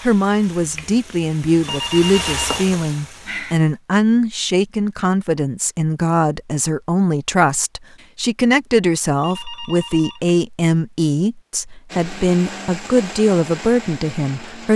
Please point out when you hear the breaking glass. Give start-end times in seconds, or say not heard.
not heard.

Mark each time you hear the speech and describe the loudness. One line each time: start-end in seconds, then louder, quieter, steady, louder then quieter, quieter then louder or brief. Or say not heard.
0.0-14.7 steady.